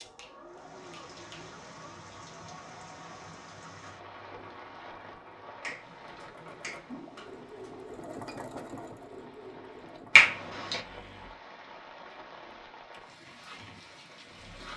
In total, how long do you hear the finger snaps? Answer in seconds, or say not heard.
4 s.